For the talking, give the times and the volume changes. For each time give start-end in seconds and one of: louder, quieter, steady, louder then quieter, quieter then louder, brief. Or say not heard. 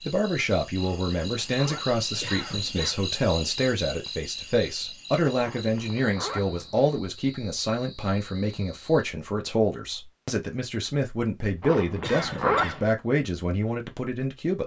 0.1-14.6 steady.